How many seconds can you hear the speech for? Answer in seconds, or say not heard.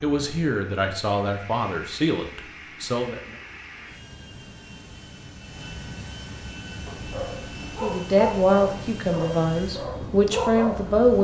7 s.